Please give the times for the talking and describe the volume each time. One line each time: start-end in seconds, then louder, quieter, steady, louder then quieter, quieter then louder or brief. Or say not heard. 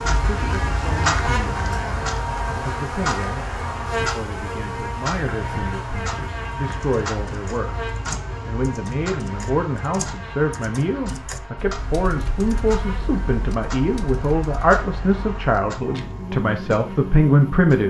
0.1-17.8 louder.